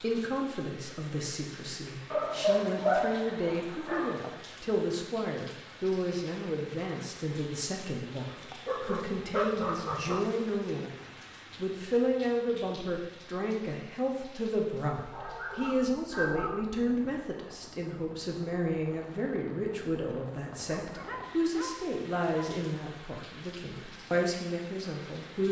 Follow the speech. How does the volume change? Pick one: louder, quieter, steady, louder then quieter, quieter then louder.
steady.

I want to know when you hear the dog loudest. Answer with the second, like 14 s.
3 s.